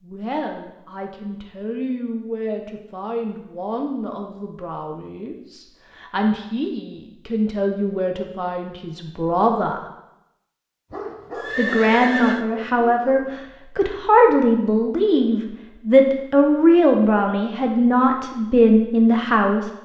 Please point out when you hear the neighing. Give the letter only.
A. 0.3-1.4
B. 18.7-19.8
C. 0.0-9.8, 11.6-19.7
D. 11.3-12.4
D.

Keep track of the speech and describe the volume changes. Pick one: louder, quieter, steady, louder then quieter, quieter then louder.
louder.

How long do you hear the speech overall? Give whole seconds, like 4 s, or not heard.
18 s.